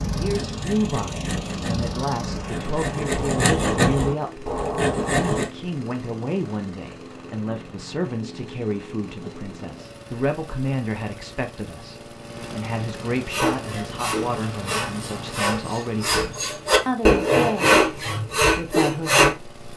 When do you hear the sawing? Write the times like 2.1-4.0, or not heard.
0.0-5.5, 13.2-19.3.